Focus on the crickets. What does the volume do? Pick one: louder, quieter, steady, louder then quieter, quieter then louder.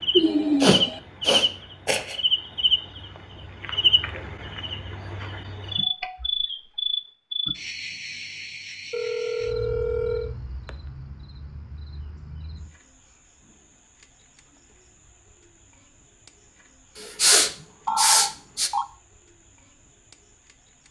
quieter.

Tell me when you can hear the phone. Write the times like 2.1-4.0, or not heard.
0.1-1.0, 8.9-10.3, 17.9-18.9.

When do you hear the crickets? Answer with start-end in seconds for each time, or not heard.
0.0-20.8.